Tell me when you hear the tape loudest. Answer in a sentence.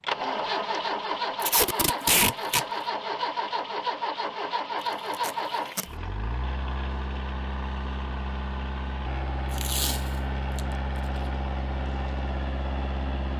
The loudest moment of the tape is at 2 seconds.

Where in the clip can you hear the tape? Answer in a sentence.
You can hear the tape from 1.4 to 2.6 s, from 5.1 to 5.8 s and from 9.5 to 10.6 s.